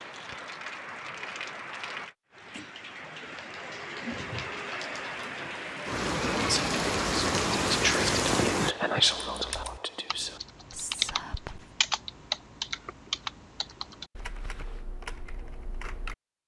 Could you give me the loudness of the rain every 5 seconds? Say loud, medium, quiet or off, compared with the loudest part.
medium, loud, off, off.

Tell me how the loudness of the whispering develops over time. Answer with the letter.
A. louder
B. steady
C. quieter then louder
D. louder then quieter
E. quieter
D.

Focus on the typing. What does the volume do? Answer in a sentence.
The volume of the typing goes up, then down.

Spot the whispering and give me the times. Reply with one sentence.
You can hear the whispering from 6.3 to 11.7 s.